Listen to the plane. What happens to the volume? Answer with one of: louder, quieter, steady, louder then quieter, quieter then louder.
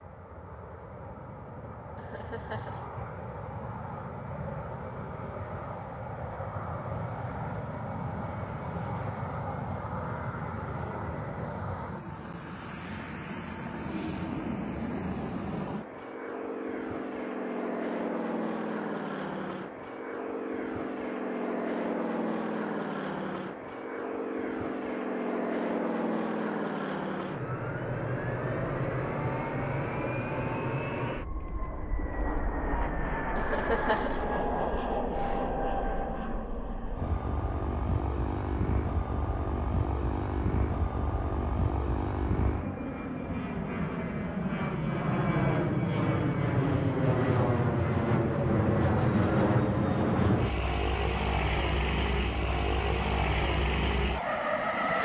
louder.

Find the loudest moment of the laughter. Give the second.
34 s.